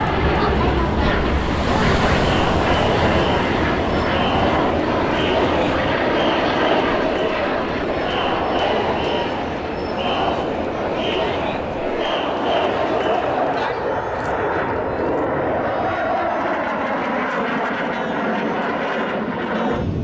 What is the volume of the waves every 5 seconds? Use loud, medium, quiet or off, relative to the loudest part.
loud, medium, medium, off.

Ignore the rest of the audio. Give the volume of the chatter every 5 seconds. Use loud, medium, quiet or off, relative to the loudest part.
loud, loud, loud, quiet.